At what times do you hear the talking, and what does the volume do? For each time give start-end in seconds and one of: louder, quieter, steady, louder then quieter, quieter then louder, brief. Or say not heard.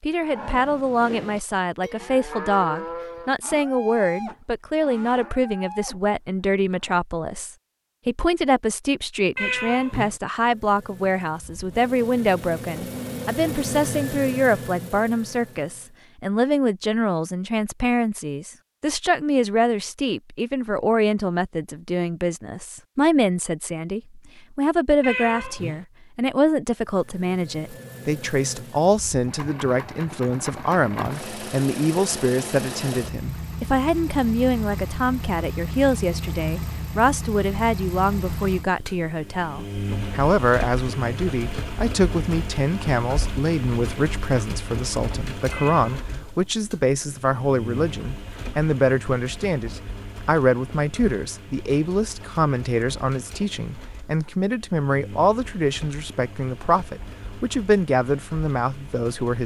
0.0-59.4 steady.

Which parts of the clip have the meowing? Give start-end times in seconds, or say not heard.
9.3-10.2, 25.0-25.9, 45.5-46.3.